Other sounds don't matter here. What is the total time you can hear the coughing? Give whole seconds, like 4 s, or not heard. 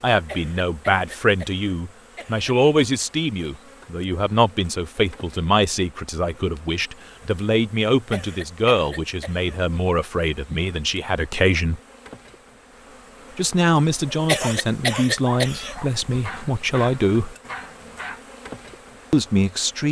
5 s.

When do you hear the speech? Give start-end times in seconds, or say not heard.
0.0-11.8, 13.3-17.4, 19.1-19.8.